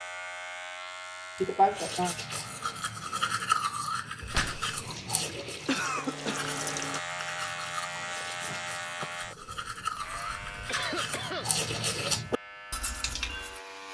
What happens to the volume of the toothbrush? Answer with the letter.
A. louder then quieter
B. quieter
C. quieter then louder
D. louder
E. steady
C.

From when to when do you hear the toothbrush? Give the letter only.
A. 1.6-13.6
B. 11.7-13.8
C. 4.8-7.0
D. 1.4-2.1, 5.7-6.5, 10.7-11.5
A.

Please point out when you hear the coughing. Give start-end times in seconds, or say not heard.
1.4-2.1, 5.7-6.5, 10.7-11.5.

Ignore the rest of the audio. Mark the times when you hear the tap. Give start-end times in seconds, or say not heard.
4.8-7.0.